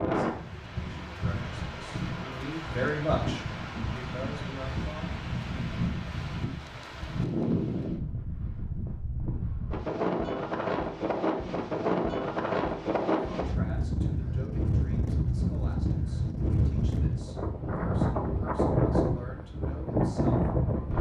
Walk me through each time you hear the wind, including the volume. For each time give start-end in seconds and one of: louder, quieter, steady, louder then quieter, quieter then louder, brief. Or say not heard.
0.0-20.9 louder.